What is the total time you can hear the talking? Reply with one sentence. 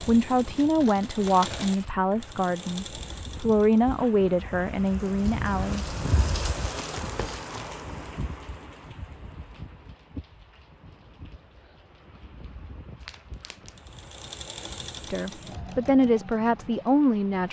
The talking can be heard for 8 seconds in total.